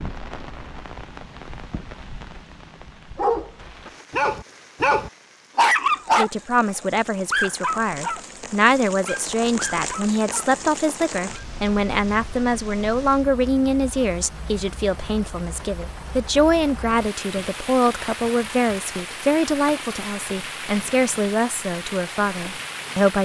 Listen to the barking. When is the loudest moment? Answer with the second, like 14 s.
6 s.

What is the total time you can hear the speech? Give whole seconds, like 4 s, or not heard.
17 s.